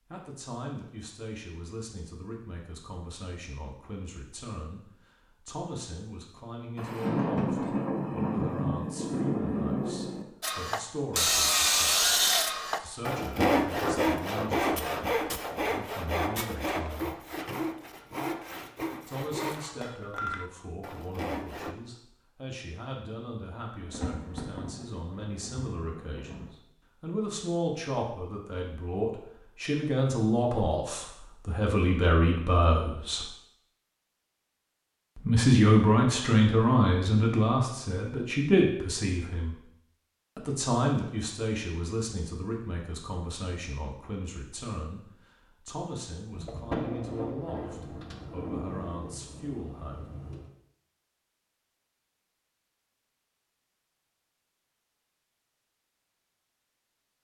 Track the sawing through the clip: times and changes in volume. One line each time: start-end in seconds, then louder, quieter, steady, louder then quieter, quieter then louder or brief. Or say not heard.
10.4-21.8 quieter.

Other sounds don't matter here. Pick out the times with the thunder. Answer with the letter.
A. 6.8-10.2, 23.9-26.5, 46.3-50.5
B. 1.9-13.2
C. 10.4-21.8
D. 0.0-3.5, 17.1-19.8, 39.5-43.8
A.